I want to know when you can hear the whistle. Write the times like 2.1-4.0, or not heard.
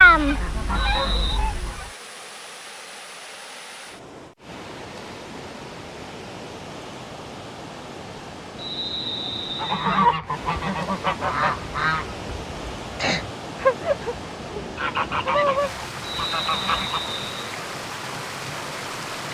0.8-1.4, 8.6-10.1, 16.0-17.6.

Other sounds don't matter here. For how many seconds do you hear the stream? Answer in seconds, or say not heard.
19 s.